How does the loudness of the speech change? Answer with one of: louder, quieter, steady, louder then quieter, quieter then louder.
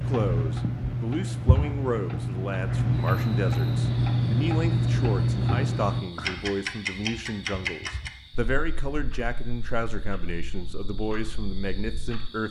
steady.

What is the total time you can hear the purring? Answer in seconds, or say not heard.
not heard.